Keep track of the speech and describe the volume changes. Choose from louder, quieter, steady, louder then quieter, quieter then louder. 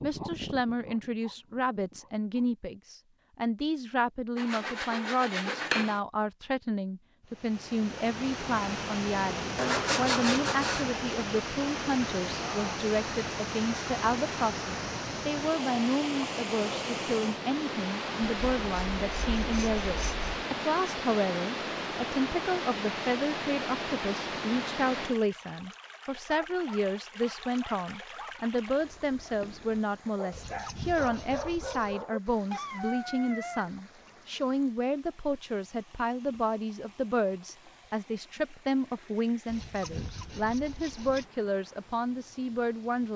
steady.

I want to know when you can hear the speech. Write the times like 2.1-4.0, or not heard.
0.0-43.1.